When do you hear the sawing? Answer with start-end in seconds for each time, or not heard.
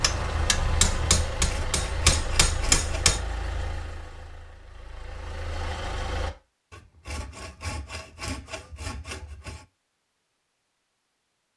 1.4-3.2, 6.7-9.7.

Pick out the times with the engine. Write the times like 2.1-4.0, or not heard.
0.0-6.3.